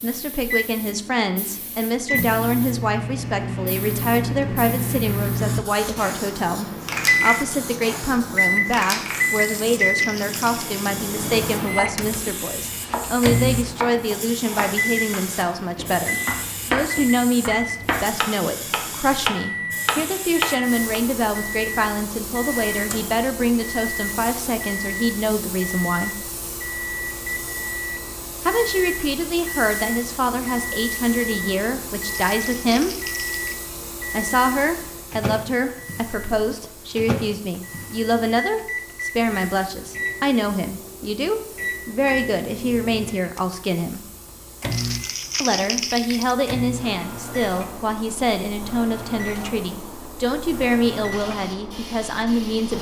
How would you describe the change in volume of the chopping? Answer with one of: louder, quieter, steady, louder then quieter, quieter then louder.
louder.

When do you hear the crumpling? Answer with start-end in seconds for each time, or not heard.
9.3-10.7, 32.1-33.6, 44.7-46.4.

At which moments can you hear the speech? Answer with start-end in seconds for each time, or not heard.
0.0-26.2, 28.4-33.0, 34.1-44.0, 45.4-52.7.